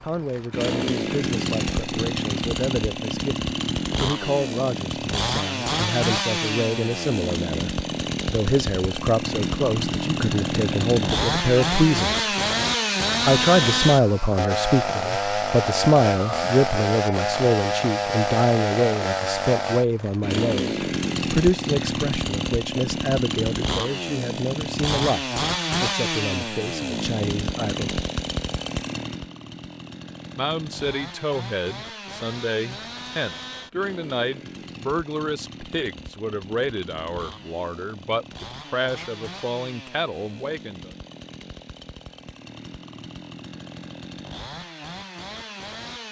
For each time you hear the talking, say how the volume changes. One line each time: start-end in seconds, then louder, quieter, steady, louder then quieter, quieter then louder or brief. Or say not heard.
0.0-12.2 louder
13.2-27.9 quieter
30.4-40.9 steady.